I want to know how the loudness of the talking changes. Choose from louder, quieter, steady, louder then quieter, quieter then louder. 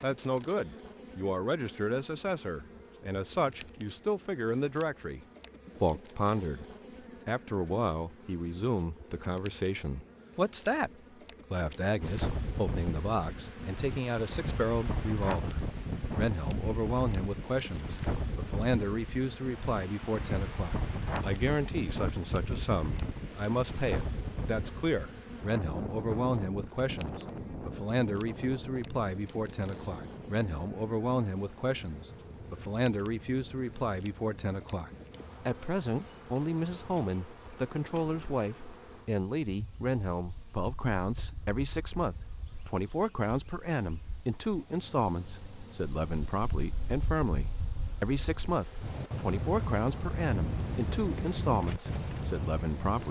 steady.